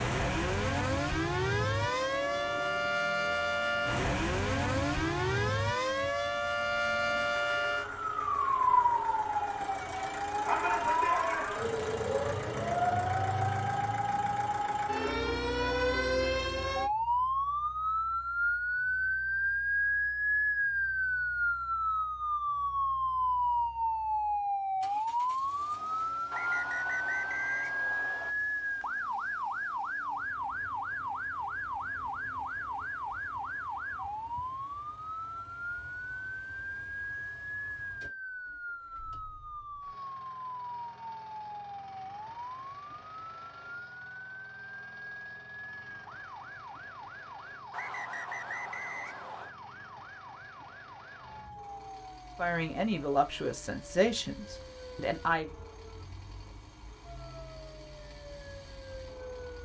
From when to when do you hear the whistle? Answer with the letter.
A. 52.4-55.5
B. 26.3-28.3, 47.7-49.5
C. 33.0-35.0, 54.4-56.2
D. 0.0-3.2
B.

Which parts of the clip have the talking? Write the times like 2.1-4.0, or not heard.
52.4-55.5.